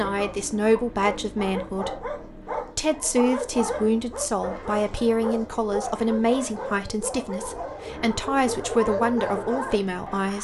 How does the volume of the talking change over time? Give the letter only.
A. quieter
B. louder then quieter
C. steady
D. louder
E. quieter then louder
C.